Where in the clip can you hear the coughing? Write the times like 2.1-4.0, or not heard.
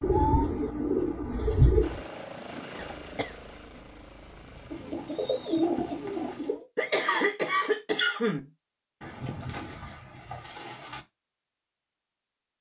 2.8-4.5, 6.8-8.5.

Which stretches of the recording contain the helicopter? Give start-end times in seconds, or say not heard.
1.8-6.4.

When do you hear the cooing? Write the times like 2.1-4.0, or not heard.
0.0-2.0, 4.7-6.7, 9.0-11.0.